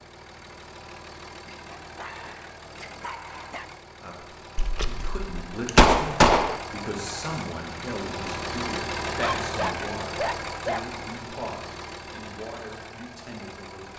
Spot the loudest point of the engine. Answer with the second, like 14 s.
9 s.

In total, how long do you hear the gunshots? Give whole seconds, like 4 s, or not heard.
2 s.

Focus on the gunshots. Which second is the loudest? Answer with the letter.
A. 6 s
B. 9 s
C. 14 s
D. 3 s
A.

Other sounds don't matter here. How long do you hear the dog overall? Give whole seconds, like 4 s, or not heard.
4 s.